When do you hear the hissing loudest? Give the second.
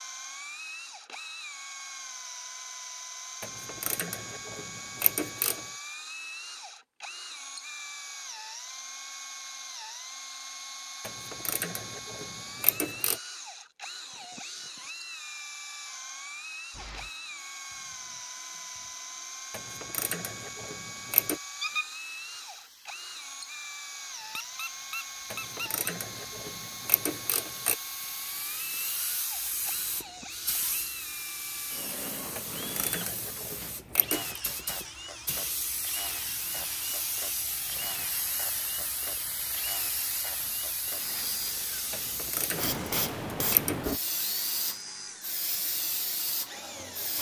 43 s.